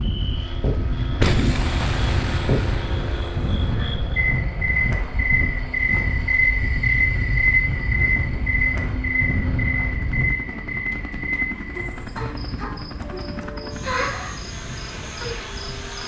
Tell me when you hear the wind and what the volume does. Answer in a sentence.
You can hear the wind from 0.0 to 16.0 s, getting quieter.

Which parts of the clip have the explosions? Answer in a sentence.
You can hear the explosions from 1.2 to 3.8 s.